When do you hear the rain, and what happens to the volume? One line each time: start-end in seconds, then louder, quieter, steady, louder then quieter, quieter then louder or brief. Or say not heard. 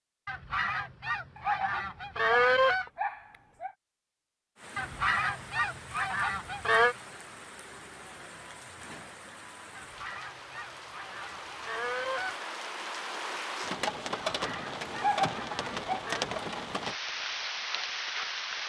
4.5-18.6 louder.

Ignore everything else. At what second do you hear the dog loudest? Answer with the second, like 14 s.
15 s.